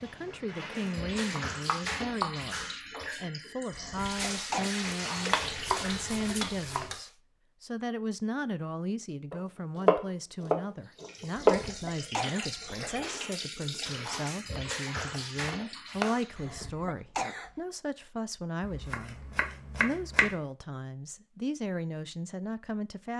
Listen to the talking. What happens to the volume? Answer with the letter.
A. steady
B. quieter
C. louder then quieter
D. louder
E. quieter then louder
A.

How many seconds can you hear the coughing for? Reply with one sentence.
The coughing can be heard for 4 seconds in total.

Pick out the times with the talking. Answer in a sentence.
You can hear the talking from 0.0 to 23.1 s.